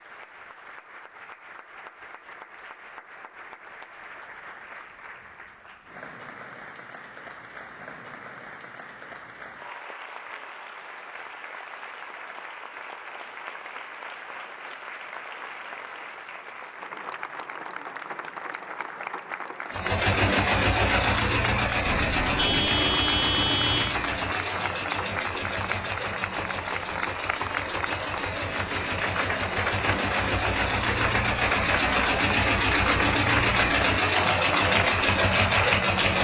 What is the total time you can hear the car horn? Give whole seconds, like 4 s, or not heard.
2 s.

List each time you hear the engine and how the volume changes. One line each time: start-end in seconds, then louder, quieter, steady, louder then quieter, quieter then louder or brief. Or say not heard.
19.7-36.1 quieter then louder.